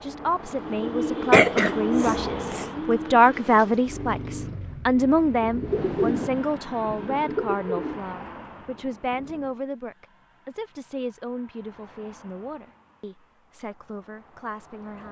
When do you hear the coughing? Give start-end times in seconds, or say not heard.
1.3-2.6.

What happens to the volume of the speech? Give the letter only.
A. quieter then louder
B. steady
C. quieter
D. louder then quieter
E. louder
C.